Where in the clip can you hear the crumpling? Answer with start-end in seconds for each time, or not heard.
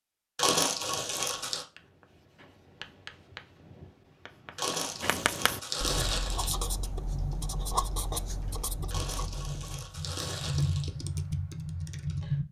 0.3-1.6, 4.5-6.5, 8.9-10.9.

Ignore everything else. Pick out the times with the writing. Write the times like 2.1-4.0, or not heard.
1.8-9.8.